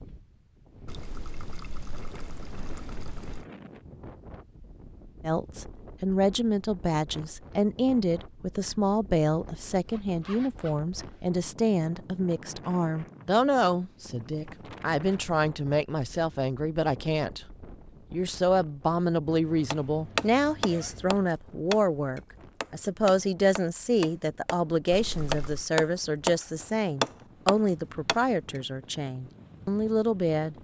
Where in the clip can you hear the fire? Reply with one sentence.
You can't hear the fire here.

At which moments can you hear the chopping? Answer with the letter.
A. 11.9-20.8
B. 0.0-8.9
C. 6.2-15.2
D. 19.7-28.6
D.